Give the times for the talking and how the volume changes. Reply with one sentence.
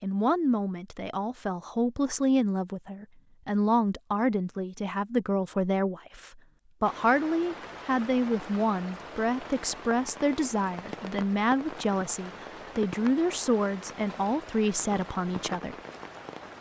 The talking can be heard from 0.0 to 15.8 s, at a steady volume.